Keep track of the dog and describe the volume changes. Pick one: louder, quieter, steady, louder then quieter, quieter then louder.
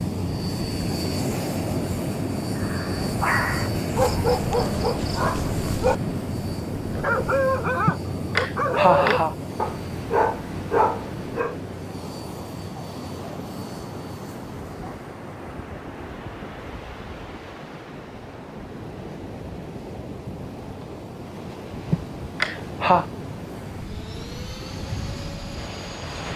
steady.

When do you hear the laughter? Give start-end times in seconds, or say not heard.
7.8-9.3, 21.9-23.1.